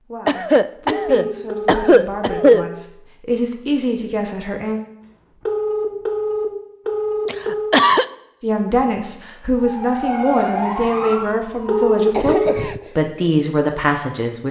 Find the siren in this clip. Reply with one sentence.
You can hear the siren from 9.6 to 12.1 s.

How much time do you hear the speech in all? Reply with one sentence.
You can hear the speech for 11 seconds altogether.